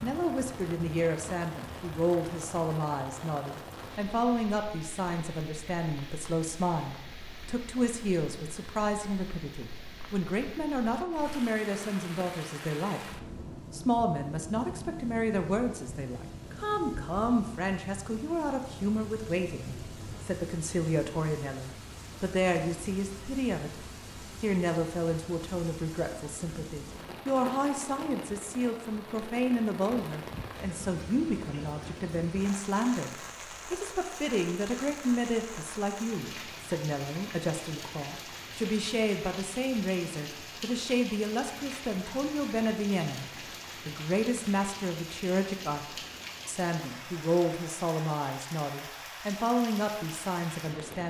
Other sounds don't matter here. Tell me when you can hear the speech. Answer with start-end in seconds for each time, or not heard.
0.0-43.2, 43.9-51.0.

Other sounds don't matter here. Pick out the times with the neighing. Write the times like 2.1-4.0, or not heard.
not heard.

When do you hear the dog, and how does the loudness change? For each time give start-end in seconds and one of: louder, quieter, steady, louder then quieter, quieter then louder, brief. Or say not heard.
not heard.